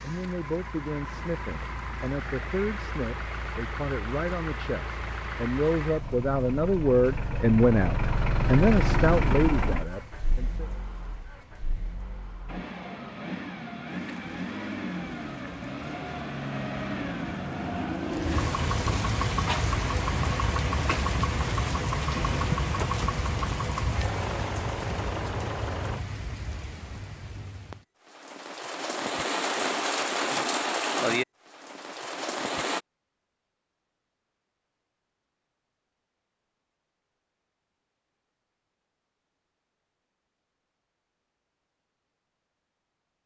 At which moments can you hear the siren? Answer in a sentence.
The siren can't be heard in this clip.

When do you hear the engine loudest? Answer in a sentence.
The volume of the engine peaks at 9 seconds.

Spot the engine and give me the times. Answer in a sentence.
The engine can be heard from 0.0 to 26.1 s.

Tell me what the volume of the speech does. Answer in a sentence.
The loudness of the speech goes up.